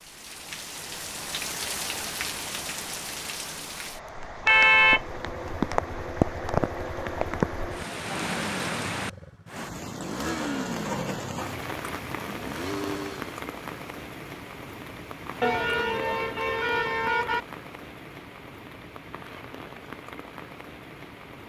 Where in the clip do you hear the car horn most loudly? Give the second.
5 s.